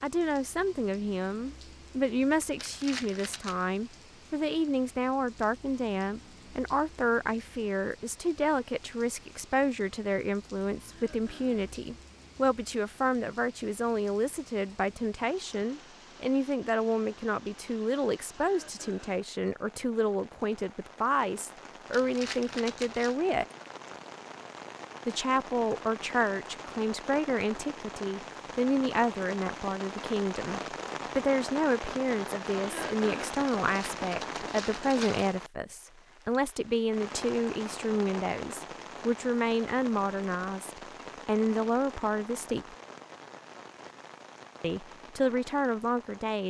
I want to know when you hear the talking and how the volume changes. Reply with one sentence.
You can hear the talking from 0.0 to 23.4 s, at a steady volume; from 25.1 to 42.8 s, at a steady volume; and briefly from 44.6 to 46.4 s.